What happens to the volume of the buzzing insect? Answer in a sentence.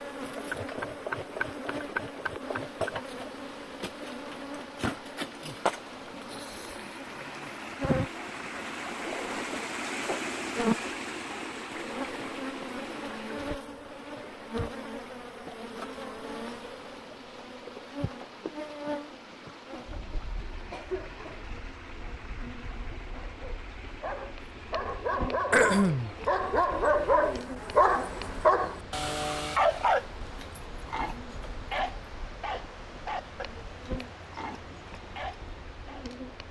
The volume of the buzzing insect goes down.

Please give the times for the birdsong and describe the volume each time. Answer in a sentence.
You can't hear the birdsong here.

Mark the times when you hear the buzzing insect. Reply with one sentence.
The buzzing insect can be heard from 0.0 to 36.4 s.